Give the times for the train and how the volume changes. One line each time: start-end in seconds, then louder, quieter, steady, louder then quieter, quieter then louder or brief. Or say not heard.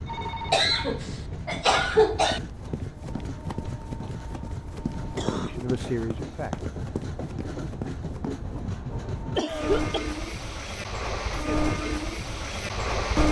0.0-13.2 louder.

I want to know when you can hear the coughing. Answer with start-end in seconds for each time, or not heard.
0.5-2.4, 5.2-5.7, 9.3-10.1.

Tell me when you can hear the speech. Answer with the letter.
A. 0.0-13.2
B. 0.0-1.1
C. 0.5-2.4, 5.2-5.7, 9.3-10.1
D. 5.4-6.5
D.